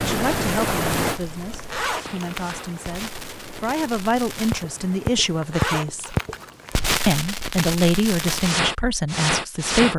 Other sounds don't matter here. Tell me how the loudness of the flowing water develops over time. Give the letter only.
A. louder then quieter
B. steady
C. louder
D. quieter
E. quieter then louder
D.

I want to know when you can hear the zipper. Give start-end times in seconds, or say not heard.
1.5-3.0, 5.2-6.9.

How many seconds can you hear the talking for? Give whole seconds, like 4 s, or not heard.
9 s.